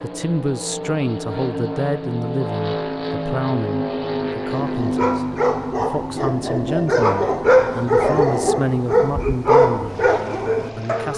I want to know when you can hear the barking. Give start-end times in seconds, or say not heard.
4.5-11.1.